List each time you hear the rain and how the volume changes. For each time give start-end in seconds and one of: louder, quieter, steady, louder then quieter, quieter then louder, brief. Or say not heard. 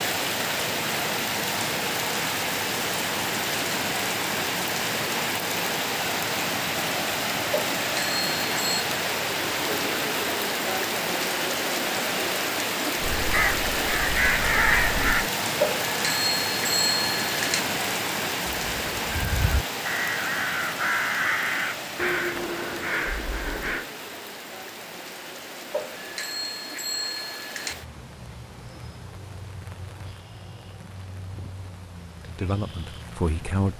0.0-33.7 quieter.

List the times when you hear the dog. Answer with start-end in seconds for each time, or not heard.
not heard.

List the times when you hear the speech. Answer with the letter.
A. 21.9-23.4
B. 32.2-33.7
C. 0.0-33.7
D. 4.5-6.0
B.